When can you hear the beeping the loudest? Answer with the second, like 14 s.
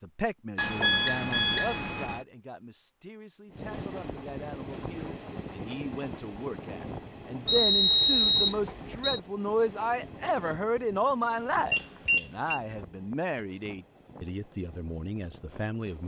8 s.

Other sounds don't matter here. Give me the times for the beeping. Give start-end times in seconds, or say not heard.
0.6-2.2, 7.5-9.2, 11.7-12.6.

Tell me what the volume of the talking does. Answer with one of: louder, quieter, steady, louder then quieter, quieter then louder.
louder then quieter.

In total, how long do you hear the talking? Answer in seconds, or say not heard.
16 s.